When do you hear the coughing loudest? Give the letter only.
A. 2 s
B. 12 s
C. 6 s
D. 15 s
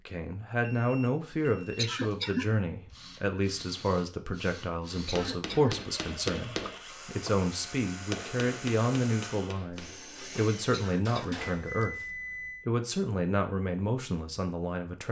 A.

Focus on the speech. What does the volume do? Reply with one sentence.
The volume of the speech stays about the same.